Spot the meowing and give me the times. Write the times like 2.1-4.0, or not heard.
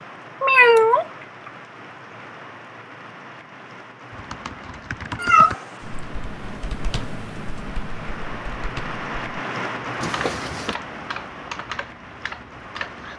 0.4-1.5, 5.2-5.6, 10.0-10.8.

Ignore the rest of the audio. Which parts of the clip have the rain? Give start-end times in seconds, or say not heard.
0.0-13.1.